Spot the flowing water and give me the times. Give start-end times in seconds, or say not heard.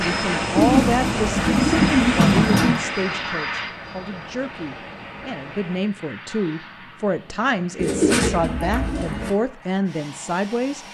0.0-5.8.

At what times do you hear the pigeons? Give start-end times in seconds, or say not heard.
0.6-2.8, 7.8-9.3.